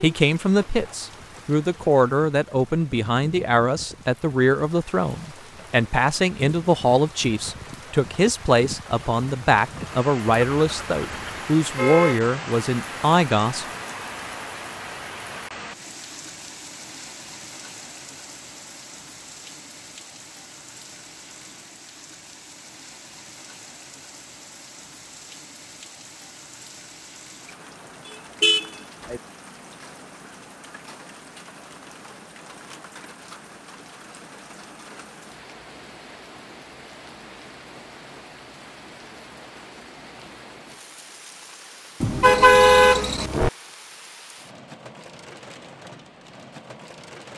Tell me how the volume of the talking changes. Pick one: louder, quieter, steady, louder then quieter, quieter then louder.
steady.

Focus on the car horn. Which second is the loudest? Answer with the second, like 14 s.
43 s.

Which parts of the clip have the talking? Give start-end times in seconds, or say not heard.
0.0-13.7.